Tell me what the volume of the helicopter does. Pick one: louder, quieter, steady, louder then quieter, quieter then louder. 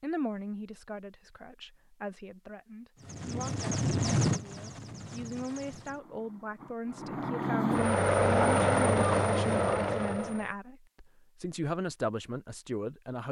quieter then louder.